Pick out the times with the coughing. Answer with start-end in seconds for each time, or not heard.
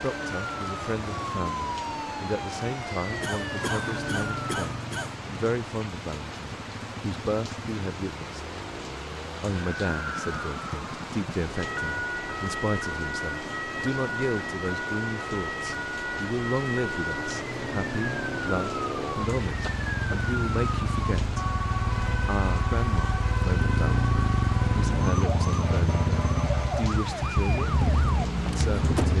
3.2-5.2, 19.6-20.1.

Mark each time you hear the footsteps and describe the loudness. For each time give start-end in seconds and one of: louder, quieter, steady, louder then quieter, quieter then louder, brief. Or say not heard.
not heard.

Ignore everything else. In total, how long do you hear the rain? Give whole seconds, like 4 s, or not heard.
29 s.